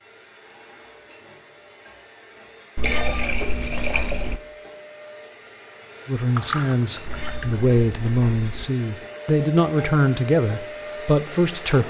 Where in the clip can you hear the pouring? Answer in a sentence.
The pouring can be heard from 2.8 to 4.3 s and from 6.3 to 7.7 s.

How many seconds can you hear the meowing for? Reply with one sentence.
You can hear the meowing for 3 seconds altogether.